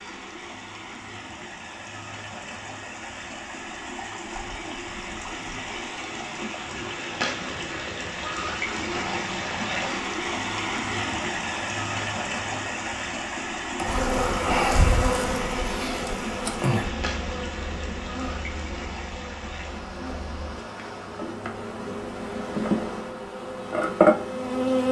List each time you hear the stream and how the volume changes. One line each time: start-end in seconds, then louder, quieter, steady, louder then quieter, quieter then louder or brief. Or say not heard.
0.0-21.4 louder then quieter.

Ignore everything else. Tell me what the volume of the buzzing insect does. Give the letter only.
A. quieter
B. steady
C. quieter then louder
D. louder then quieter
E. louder
C.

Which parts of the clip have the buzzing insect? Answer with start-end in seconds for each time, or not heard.
13.8-24.8.